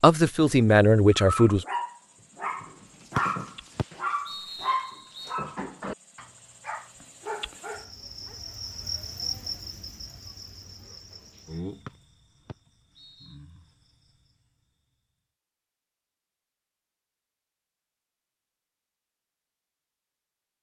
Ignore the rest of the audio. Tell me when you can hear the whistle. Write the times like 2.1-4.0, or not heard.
3.1-5.3, 11.8-13.4.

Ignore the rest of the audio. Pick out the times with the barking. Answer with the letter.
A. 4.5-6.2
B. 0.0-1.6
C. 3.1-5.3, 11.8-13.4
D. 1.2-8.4
D.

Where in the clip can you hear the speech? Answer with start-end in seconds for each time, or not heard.
0.0-1.6.